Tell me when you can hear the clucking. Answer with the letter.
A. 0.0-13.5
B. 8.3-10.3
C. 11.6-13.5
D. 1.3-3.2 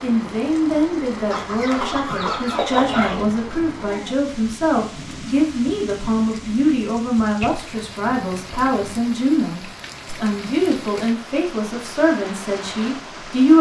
D.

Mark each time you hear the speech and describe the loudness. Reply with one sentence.
You can hear the speech from 0.0 to 13.5 s, at a steady volume.